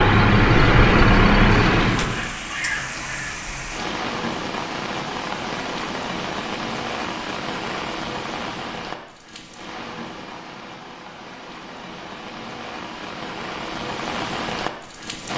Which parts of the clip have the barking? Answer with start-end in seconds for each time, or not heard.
not heard.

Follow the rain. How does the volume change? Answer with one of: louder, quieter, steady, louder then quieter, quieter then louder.
quieter then louder.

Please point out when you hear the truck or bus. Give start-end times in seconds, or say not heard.
0.0-2.4.